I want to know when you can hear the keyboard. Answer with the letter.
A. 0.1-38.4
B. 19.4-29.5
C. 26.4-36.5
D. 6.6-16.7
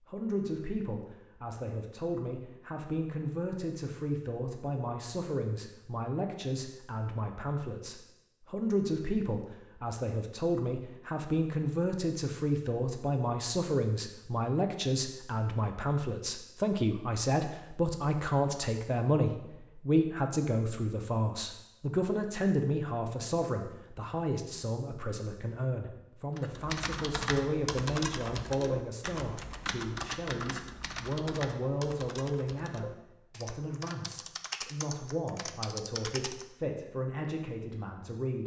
C.